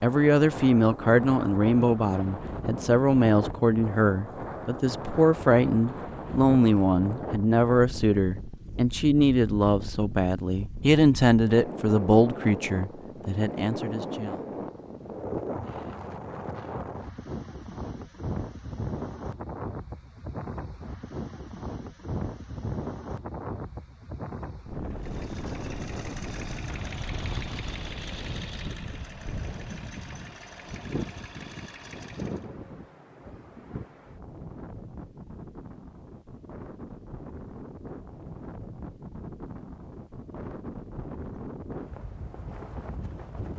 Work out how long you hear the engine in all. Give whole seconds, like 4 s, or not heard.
8 s.